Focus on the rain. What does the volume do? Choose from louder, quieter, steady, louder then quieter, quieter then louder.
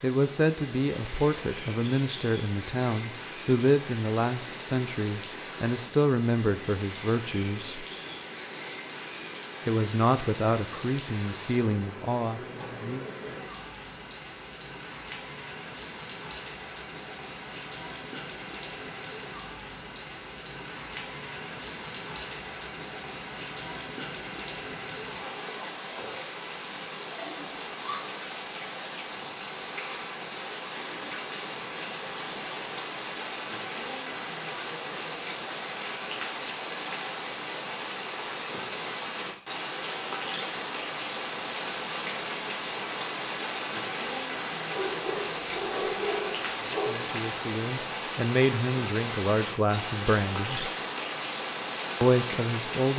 louder.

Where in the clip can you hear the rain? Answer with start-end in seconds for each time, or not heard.
0.0-52.9.